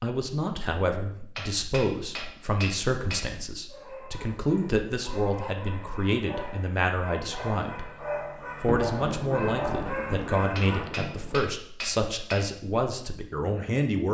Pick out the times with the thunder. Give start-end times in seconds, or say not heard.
8.7-11.4.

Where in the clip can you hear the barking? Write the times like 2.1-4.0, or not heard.
3.6-10.8.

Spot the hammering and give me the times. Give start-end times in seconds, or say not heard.
1.4-3.2, 10.6-12.4.